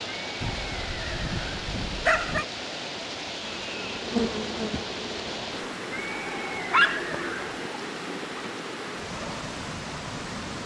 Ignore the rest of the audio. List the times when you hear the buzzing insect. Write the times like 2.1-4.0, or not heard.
3.4-5.8.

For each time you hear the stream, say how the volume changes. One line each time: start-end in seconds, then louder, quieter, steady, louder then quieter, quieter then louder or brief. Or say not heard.
0.0-10.6 steady.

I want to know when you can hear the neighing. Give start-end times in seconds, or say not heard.
0.2-1.6, 5.9-7.7.